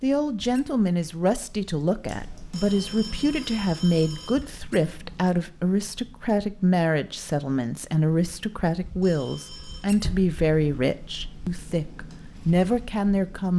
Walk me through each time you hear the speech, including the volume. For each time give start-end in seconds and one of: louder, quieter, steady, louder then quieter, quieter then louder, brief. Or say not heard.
0.0-13.5 steady.